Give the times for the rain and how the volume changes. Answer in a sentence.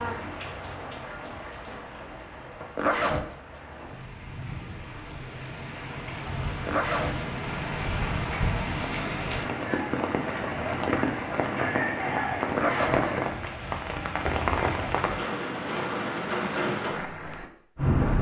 You can hear the rain from 0.0 to 18.1 s, getting louder.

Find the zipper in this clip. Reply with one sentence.
You can hear the zipper from 2.8 to 3.2 s, from 6.7 to 7.2 s and from 12.6 to 13.1 s.